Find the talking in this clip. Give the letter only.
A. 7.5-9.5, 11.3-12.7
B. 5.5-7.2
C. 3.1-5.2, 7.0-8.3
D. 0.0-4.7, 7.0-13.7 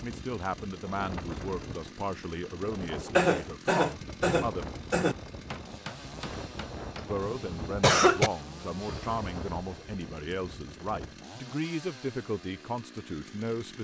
D.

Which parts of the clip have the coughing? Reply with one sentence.
You can hear the coughing from 3.1 to 5.2 s and from 7.0 to 8.3 s.